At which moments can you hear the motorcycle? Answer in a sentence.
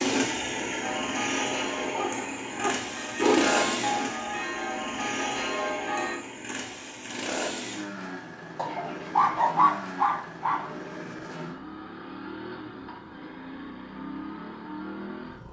You can hear the motorcycle from 0.0 to 15.4 s.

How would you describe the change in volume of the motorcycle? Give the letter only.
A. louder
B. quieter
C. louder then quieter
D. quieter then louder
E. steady
B.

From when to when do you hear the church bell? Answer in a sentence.
The church bell can be heard from 0.8 to 6.2 s.